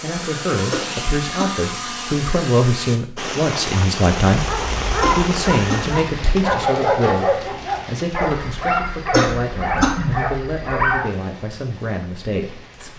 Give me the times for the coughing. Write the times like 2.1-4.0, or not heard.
0.7-1.5, 5.0-6.0, 9.1-10.2.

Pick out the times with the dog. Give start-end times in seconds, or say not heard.
4.3-11.1.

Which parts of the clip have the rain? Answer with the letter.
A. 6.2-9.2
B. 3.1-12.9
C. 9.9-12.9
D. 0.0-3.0
B.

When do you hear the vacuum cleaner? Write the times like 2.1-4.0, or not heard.
0.0-3.0.